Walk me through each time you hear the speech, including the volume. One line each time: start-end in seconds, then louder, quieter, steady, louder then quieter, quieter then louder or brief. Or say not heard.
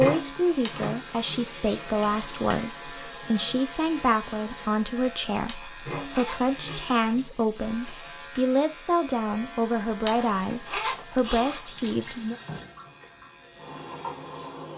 0.0-12.3 steady.